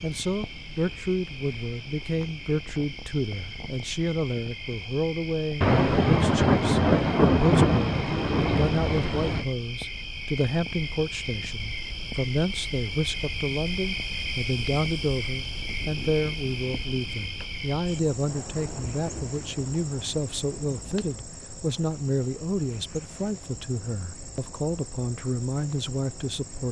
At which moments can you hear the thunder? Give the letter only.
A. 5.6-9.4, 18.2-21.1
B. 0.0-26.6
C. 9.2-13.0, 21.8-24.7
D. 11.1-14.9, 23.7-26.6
A.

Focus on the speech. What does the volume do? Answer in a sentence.
The loudness of the speech stays about the same.